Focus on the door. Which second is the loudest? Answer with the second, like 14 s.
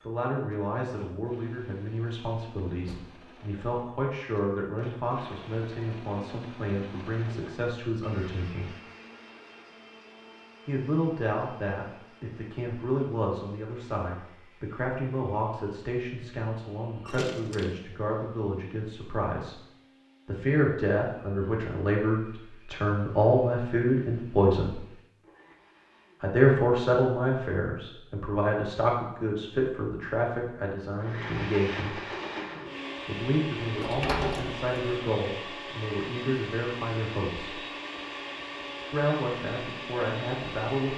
34 s.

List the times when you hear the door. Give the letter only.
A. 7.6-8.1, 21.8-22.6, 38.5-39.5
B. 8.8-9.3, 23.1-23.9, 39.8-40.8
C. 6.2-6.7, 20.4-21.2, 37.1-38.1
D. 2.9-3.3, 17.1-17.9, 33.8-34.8
D.